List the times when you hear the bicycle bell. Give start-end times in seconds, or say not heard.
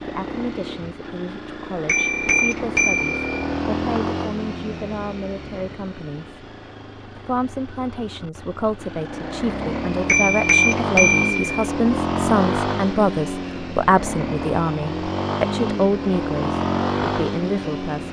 1.9-3.3, 10.1-11.4.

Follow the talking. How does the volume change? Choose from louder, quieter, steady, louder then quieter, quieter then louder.
louder.